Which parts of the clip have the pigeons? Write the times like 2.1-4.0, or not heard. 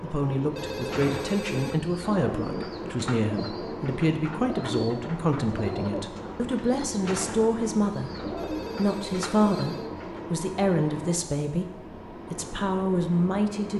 0.7-10.3.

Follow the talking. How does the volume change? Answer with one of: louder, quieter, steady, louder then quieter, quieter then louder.
steady.